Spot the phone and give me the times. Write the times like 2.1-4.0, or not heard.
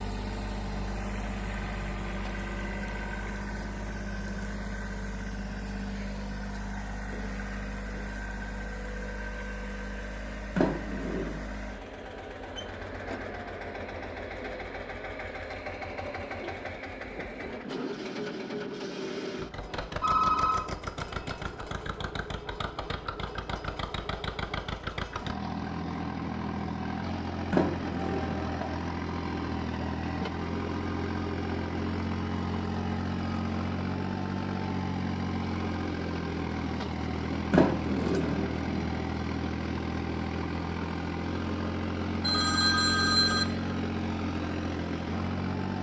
20.0-20.7, 42.2-43.5.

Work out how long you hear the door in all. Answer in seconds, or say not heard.
3 s.